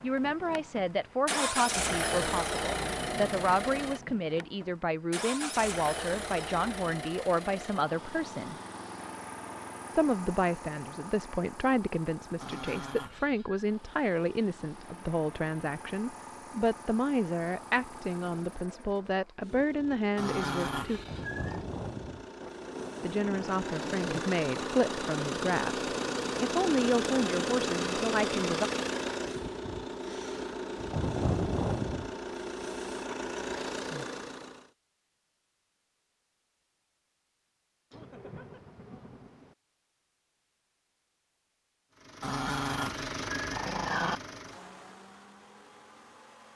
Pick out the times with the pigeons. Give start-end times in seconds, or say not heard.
not heard.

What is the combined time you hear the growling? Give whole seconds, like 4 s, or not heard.
5 s.